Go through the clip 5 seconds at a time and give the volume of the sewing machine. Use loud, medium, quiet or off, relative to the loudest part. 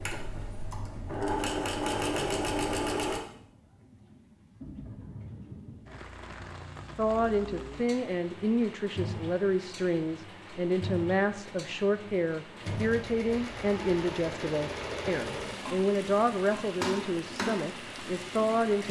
loud, off, medium, medium.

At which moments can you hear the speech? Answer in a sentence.
The speech can be heard from 7.0 to 18.8 s.